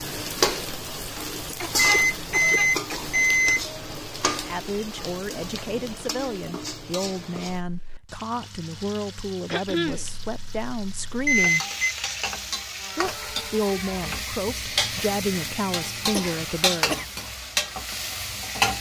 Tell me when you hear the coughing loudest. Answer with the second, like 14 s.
10 s.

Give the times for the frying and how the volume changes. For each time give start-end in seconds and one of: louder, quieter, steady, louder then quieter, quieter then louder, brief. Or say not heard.
0.0-18.7 quieter then louder.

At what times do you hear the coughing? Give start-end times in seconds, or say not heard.
1.4-3.1, 9.4-10.1, 16.1-17.1.